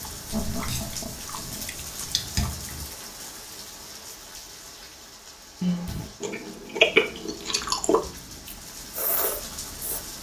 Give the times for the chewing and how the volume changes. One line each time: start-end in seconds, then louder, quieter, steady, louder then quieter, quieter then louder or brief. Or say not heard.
0.0-2.9 brief
5.8-10.1 quieter then louder.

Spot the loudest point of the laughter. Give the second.
6 s.